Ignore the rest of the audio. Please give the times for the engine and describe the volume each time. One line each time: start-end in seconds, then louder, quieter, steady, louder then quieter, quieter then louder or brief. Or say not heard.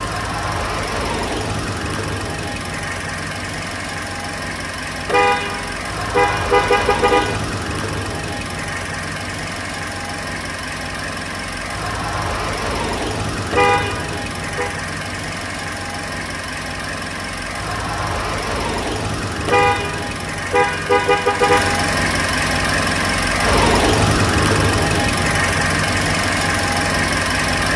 0.0-27.7 louder.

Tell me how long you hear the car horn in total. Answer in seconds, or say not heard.
6 s.